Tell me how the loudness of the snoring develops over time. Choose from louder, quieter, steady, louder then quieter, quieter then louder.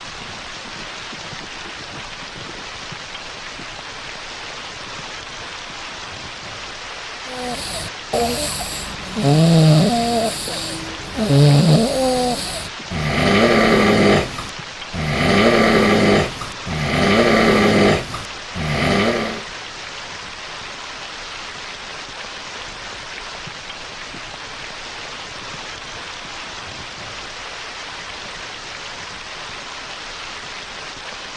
steady.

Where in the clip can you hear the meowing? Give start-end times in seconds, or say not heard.
not heard.